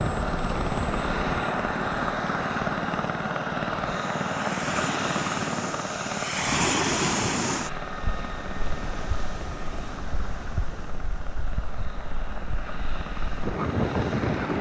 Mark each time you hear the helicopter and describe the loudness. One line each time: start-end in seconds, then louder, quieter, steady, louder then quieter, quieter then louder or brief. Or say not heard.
0.0-14.5 quieter.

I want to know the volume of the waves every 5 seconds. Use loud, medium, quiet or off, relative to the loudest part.
medium, loud, loud.